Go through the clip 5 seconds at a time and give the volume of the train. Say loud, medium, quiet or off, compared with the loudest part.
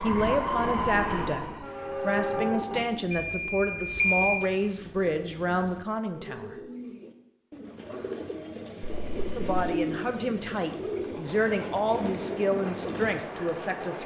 loud, off, medium.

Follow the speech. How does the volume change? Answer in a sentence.
The volume of the speech stays about the same.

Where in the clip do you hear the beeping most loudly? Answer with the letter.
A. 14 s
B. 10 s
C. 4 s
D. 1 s
C.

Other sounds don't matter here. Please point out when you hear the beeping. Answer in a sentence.
The beeping can be heard from 3.1 to 4.4 s and from 8.8 to 9.5 s.